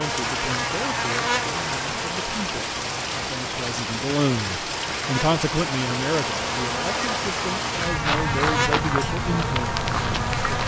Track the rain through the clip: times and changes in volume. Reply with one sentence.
You can hear the rain from 0.0 to 10.6 s, at a steady volume.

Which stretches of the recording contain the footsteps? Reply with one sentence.
The footsteps can be heard from 7.8 to 10.6 s.